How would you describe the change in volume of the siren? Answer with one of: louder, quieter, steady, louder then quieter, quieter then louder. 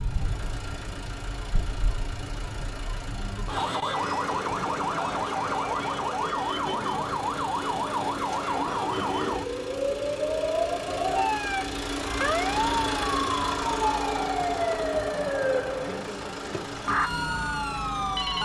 louder.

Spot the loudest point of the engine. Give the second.
13 s.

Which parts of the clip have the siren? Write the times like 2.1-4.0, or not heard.
0.0-18.4.